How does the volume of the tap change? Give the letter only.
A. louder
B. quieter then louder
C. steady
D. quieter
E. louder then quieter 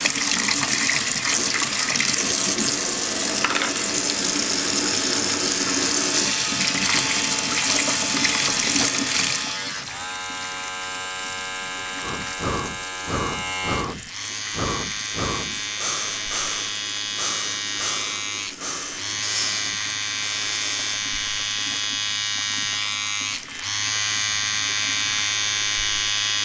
D.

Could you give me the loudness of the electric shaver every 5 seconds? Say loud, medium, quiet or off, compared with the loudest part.
medium, medium, medium, medium, loud, loud.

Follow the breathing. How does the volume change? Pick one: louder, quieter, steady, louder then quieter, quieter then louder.
steady.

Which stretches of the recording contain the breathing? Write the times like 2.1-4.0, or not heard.
12.0-21.0.